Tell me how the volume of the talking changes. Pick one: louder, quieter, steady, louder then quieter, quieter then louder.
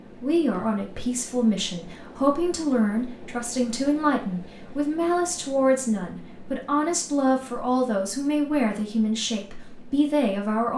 steady.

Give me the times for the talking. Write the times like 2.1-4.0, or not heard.
0.2-10.7.